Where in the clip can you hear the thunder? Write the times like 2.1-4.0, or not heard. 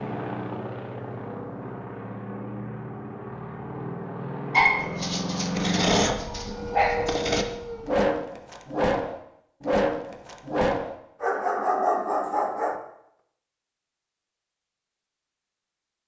not heard.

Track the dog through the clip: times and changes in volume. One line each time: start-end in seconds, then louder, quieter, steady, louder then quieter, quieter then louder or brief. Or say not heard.
4.5-12.8 steady.